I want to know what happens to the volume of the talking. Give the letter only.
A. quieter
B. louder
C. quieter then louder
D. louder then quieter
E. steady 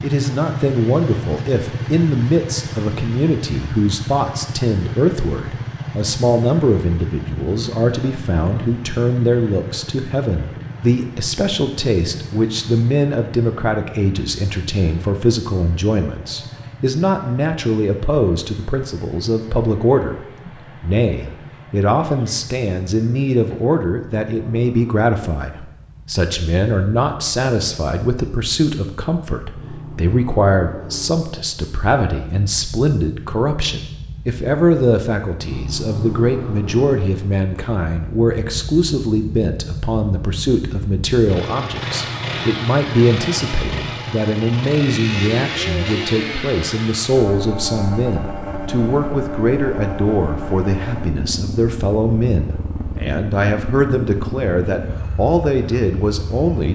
E.